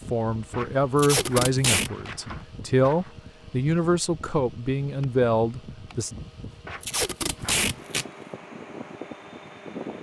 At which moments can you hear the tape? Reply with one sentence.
You can hear the tape from 0.9 to 1.9 s and from 6.8 to 8.1 s.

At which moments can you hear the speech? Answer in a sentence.
You can hear the speech from 0.1 to 6.1 s.